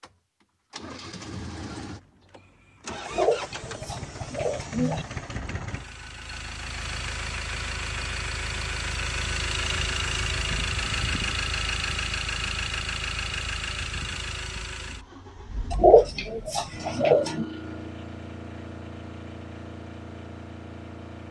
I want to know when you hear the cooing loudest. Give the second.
16 s.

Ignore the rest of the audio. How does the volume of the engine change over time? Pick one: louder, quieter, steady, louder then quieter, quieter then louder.
louder then quieter.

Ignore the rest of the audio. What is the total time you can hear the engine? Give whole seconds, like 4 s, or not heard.
21 s.